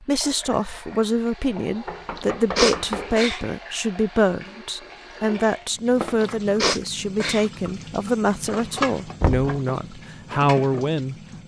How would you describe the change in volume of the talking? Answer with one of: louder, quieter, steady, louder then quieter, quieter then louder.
steady.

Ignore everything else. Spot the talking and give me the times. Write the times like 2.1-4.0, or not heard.
0.0-11.2.